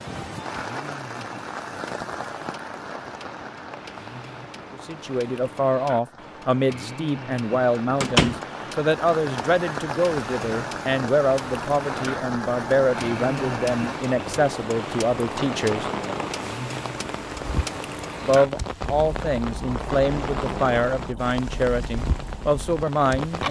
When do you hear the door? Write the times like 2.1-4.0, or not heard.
8.0-8.4.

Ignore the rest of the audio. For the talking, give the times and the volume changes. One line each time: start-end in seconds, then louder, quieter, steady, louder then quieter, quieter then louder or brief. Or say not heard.
4.7-15.9 steady
18.2-23.4 steady.